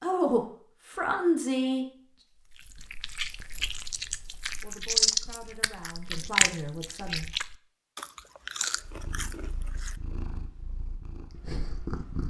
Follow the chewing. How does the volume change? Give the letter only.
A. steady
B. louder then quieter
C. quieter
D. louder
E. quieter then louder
B.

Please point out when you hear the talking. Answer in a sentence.
The talking can be heard from 0.0 to 1.9 s and from 4.6 to 7.2 s.